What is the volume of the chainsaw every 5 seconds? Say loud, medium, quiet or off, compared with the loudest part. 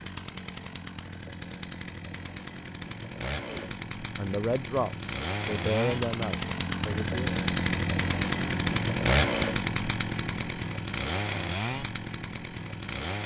medium, loud, medium.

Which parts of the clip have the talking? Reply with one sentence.
The talking can be heard from 3.5 to 7.2 s.